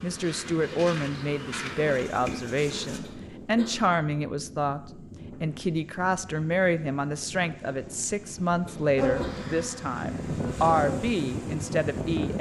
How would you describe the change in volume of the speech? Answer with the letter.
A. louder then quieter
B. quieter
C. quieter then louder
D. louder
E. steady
E.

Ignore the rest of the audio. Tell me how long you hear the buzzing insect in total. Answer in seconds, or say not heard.
6 s.